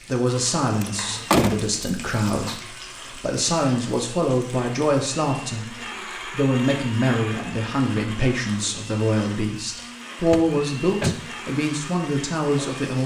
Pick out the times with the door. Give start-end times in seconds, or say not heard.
0.8-2.5, 10.3-11.2.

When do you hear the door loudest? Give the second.
1 s.